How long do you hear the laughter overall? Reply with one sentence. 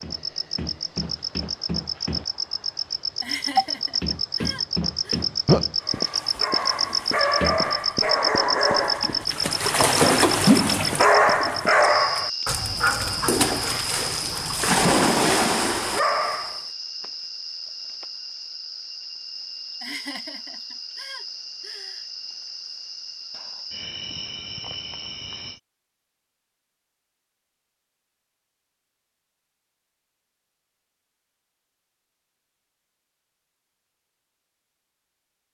You can hear the laughter for 4 seconds altogether.